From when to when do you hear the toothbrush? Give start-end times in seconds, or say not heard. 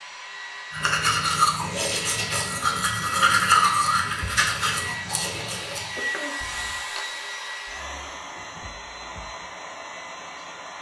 0.7-6.8.